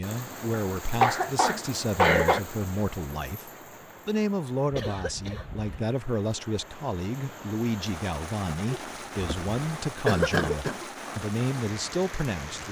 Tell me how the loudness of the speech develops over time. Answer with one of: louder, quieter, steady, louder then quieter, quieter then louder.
steady.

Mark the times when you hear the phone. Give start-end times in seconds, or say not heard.
not heard.